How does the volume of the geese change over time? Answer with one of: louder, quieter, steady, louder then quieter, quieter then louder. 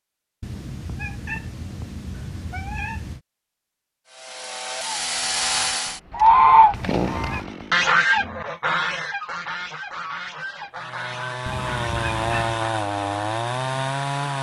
quieter.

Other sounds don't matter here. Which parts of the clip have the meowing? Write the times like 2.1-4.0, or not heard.
0.4-3.2, 6.7-7.5, 11.4-12.6.